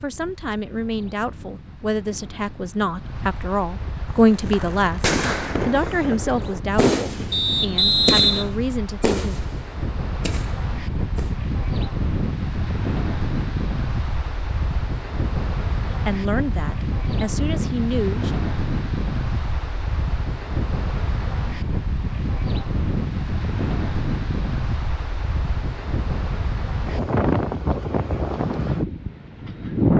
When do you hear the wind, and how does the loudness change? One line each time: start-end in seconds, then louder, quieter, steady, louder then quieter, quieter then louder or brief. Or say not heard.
0.0-29.9 louder.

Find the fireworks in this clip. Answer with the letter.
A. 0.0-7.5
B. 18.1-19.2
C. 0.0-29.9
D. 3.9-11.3
D.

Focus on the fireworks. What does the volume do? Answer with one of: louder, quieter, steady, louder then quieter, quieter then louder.
quieter.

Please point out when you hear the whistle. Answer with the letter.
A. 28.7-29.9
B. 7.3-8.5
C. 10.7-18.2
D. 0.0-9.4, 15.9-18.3
B.